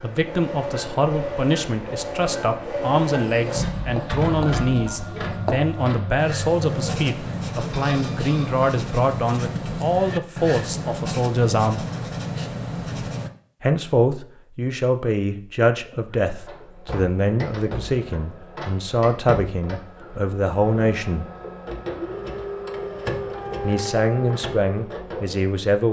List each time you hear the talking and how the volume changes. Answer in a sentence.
You can hear the talking from 0.0 to 11.8 s, at a steady volume; from 13.6 to 21.2 s, at a steady volume; and briefly from 23.6 to 25.8 s.